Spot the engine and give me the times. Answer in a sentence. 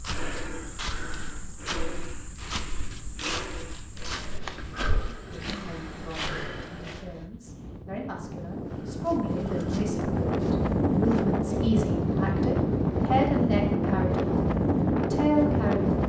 You can hear the engine from 4.0 to 7.3 s.